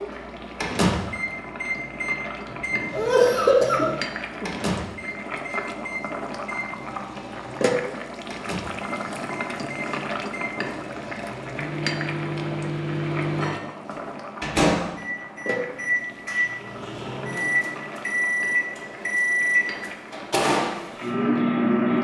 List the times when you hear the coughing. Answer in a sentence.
You can hear the coughing from 2.5 to 4.5 s.